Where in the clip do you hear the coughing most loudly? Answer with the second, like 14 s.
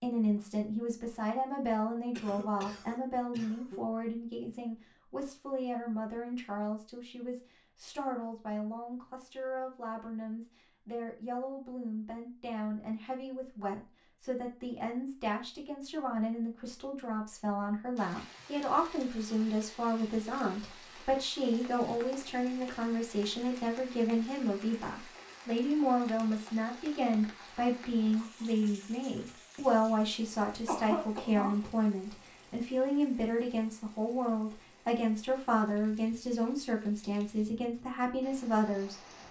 31 s.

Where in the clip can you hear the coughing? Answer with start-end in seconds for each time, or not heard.
2.1-3.8, 30.6-31.7.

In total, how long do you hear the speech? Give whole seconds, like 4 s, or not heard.
39 s.